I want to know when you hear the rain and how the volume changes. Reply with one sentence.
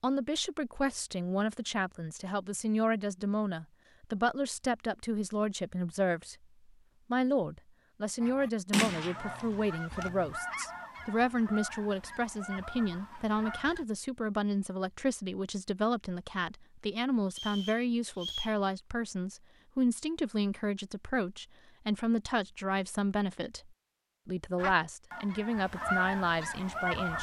The rain can't be heard in this clip.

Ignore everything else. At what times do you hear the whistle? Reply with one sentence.
The whistle can be heard from 17.3 to 18.6 s.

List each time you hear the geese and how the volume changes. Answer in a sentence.
You can hear the geese from 8.2 to 13.8 s, getting quieter; and briefly from 24.6 to 27.1 s.